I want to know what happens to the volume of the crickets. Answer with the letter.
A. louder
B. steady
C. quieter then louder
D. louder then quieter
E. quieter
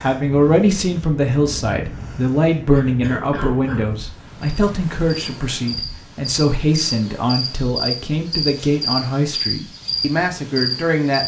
A.